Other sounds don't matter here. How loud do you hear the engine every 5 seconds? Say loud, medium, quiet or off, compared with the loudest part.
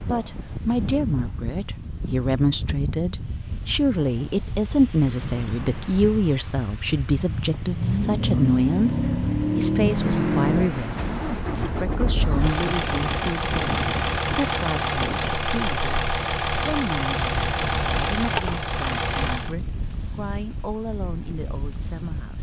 off, loud, loud, loud, off.